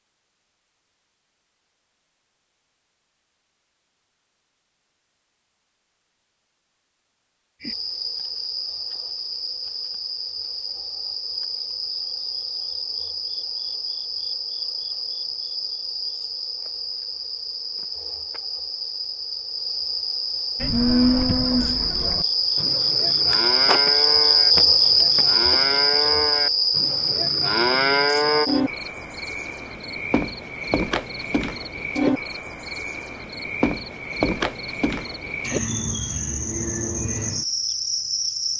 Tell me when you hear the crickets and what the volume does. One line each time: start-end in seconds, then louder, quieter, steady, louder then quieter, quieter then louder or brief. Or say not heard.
7.6-38.5 louder then quieter.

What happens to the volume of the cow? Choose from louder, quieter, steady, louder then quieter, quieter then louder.
quieter then louder.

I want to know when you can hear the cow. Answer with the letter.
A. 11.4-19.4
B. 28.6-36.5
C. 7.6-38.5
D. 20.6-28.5
D.